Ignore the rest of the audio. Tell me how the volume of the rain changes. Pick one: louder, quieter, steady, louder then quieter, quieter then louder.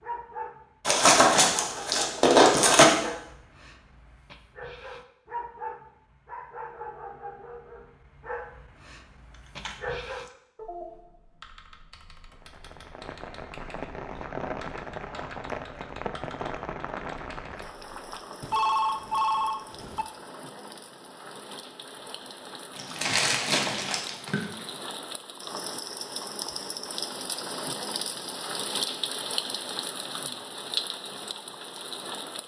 quieter then louder.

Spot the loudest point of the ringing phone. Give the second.
19 s.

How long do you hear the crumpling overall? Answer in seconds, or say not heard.
4 s.